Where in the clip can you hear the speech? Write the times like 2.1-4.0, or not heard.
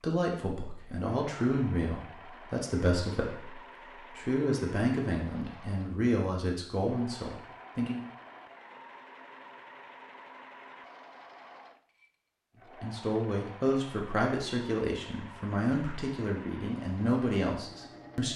0.0-8.0, 12.8-18.3.